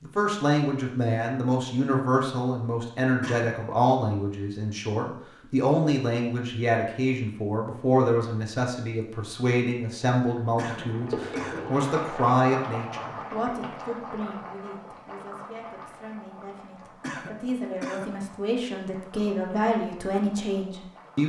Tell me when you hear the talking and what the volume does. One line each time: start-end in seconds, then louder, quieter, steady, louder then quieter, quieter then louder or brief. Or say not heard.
0.0-21.2 quieter then louder.